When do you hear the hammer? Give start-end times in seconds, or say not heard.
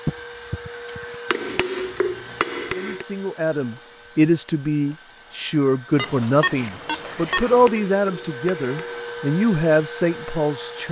1.3-3.0, 7.3-9.1.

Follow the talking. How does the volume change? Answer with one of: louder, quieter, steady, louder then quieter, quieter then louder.
steady.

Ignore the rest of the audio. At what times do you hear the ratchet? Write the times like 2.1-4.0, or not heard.
not heard.